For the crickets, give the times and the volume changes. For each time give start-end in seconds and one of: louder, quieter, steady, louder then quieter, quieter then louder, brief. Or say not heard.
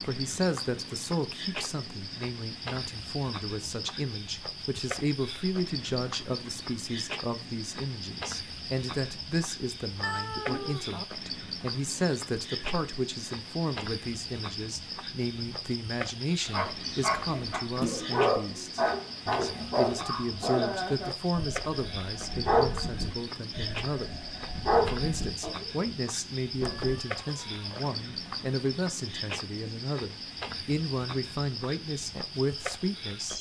0.0-33.3 steady.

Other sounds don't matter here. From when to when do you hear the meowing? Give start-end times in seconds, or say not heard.
10.0-11.1, 26.6-27.9.